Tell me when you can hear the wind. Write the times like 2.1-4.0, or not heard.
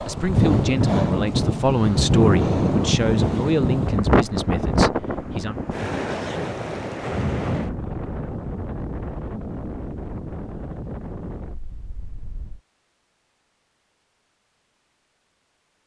0.0-12.6.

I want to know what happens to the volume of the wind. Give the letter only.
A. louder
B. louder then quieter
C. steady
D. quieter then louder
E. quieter
E.